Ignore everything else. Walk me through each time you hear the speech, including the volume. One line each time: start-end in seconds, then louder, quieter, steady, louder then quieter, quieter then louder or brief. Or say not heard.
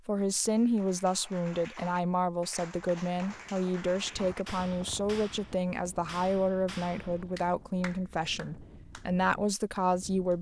0.1-10.3 steady.